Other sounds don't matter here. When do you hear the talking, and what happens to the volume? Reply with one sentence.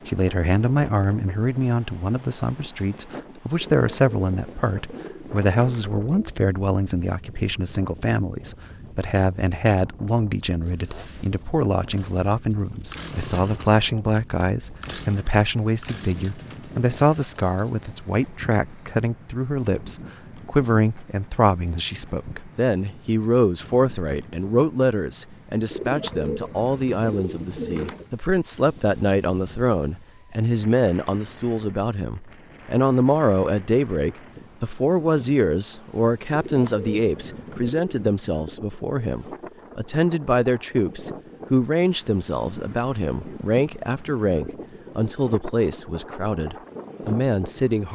You can hear the talking from 0.1 to 47.9 s, at a steady volume.